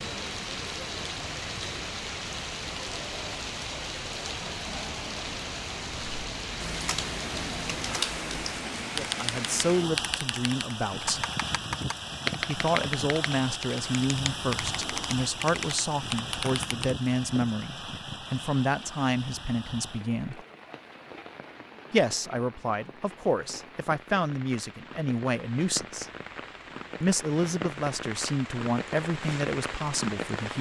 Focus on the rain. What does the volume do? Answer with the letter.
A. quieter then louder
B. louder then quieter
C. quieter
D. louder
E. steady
A.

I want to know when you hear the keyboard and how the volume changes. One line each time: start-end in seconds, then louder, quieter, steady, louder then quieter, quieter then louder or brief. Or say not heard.
5.9-16.9 steady.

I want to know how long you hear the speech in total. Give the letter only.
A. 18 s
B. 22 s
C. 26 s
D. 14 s
A.